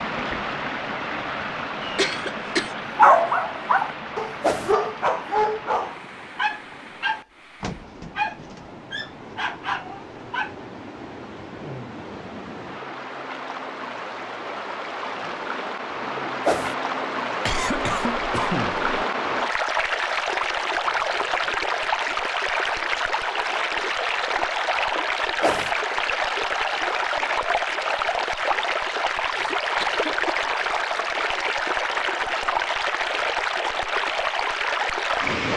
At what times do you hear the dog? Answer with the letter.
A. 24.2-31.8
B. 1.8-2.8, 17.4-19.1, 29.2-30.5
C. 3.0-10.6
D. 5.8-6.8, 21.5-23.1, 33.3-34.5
C.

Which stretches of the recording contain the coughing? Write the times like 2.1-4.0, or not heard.
1.8-2.8, 17.4-19.1, 29.2-30.5.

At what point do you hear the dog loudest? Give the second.
3 s.